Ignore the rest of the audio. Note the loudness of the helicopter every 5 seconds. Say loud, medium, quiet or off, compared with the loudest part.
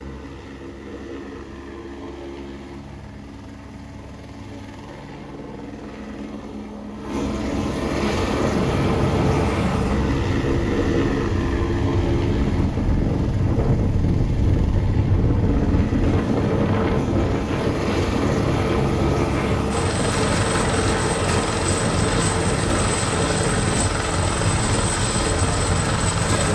quiet, loud, loud, loud, loud, loud.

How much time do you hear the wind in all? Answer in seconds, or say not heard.
18 s.